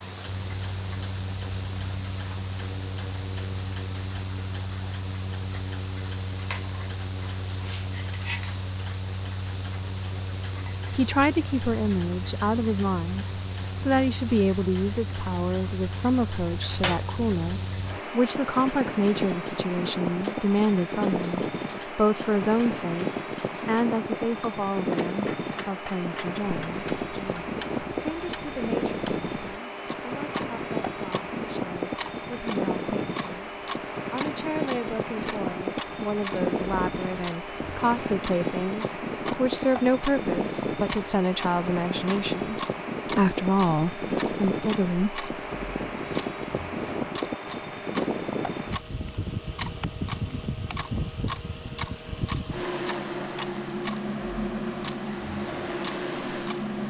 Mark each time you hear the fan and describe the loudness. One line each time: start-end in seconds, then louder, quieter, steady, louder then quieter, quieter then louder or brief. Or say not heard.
0.0-56.8 louder.